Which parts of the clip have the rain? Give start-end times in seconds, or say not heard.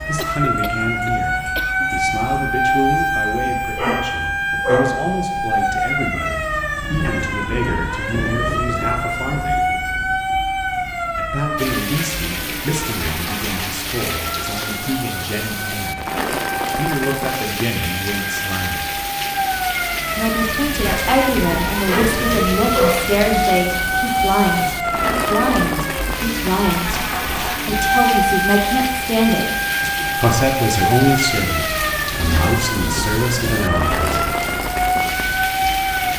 11.6-36.1.